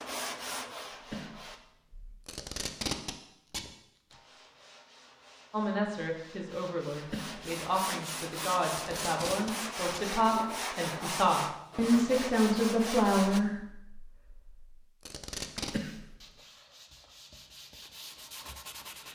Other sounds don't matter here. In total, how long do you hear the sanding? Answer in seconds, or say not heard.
14 s.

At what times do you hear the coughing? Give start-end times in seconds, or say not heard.
0.9-2.2, 6.9-7.4, 15.6-16.2.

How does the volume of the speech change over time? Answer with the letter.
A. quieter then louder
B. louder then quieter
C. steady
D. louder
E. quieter
D.